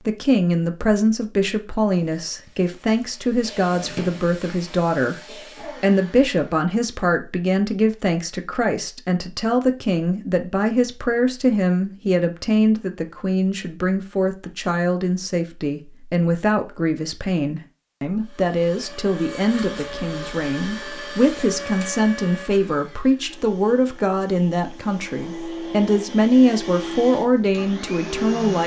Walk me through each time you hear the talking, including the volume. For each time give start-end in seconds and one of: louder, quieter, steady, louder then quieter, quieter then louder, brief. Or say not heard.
0.1-28.6 steady.